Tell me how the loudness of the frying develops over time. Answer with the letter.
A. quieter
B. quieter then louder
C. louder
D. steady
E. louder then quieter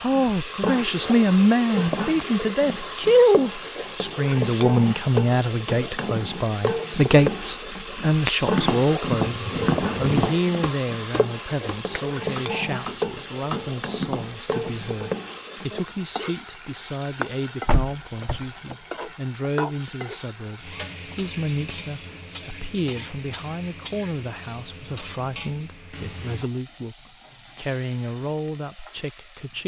A.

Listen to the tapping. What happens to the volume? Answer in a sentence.
The loudness of the tapping goes down, then up.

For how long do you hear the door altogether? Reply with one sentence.
You can hear the door for 2 seconds altogether.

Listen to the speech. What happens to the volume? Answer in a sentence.
The volume of the speech goes down.